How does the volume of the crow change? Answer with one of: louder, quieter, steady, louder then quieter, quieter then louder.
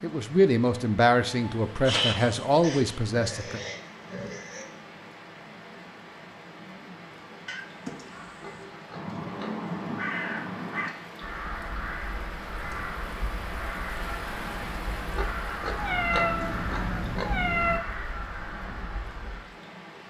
quieter.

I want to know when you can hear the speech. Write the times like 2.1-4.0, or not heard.
0.0-3.6.